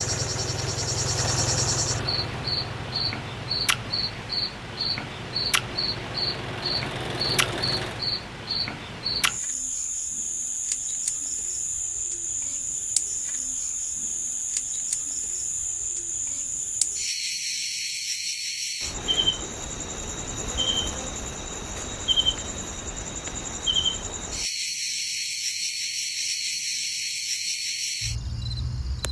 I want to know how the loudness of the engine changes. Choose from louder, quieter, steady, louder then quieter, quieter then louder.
quieter then louder.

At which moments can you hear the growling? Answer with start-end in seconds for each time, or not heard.
not heard.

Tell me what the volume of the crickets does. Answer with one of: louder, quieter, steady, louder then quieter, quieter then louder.
steady.